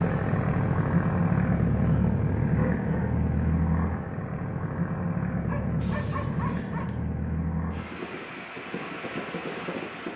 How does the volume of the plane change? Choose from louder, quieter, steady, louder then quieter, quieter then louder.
quieter.